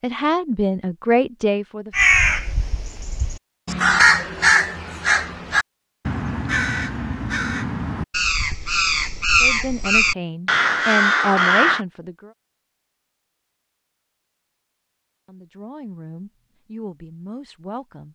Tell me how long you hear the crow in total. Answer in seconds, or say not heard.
10 s.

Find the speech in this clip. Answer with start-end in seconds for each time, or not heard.
0.0-1.9, 9.4-12.3, 15.2-18.0.